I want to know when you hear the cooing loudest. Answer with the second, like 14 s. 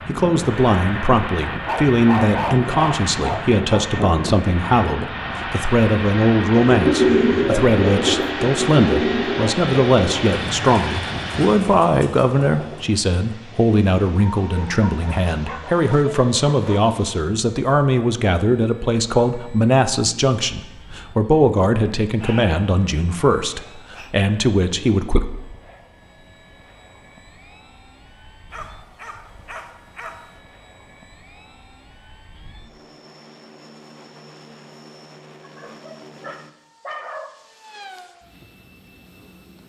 7 s.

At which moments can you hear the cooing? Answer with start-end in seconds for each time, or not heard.
6.5-13.0.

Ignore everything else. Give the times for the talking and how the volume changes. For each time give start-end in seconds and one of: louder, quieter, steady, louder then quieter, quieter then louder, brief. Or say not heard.
0.1-25.2 steady.